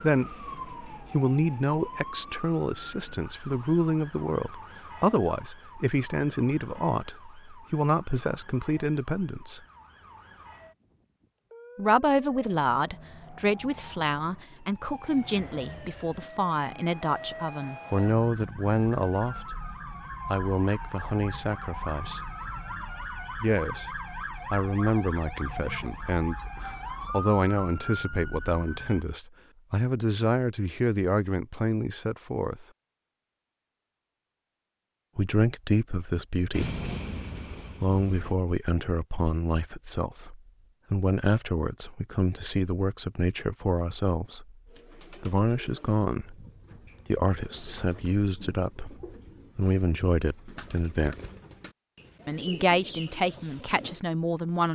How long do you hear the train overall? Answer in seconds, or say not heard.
2 s.